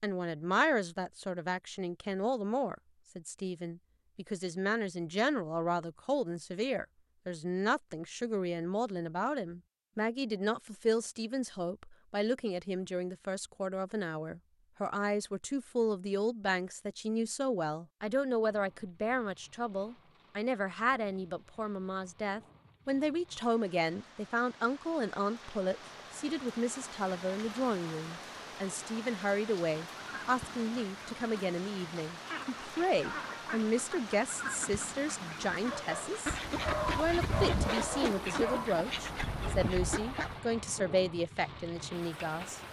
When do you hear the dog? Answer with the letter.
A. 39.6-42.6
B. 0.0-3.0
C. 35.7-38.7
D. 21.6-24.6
C.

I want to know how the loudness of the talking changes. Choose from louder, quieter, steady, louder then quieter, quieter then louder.
steady.